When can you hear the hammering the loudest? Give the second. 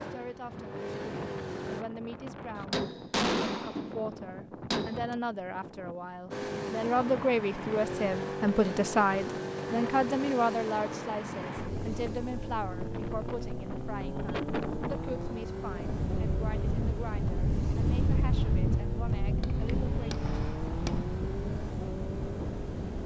3 s.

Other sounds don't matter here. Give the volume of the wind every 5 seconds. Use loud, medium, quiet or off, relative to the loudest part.
medium, medium, medium, loud, medium.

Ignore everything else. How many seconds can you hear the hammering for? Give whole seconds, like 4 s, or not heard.
4 s.